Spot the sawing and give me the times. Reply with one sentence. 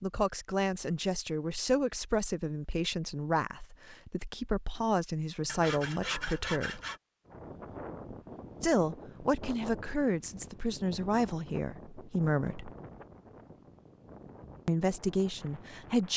You can hear the sawing from 5.5 to 7.0 s.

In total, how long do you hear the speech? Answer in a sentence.
The speech can be heard for 12 seconds in total.